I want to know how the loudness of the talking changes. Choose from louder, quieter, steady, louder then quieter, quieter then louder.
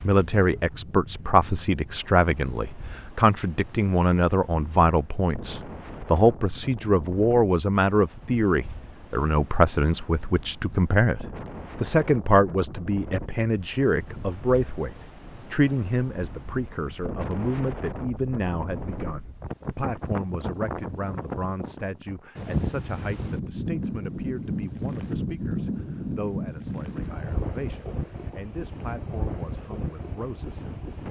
quieter.